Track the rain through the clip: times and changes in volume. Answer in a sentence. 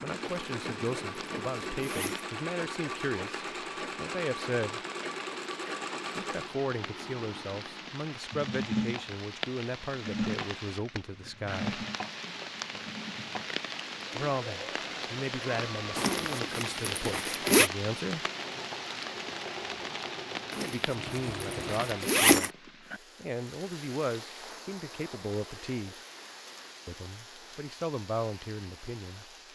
You can hear the rain from 0.0 to 29.5 s, getting louder then quieter.